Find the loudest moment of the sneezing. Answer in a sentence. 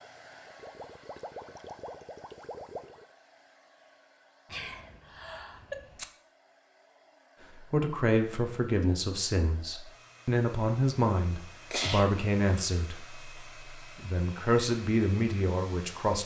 The volume of the sneezing peaks at 12 seconds.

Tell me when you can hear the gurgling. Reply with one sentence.
The gurgling can be heard from 0.0 to 3.0 s.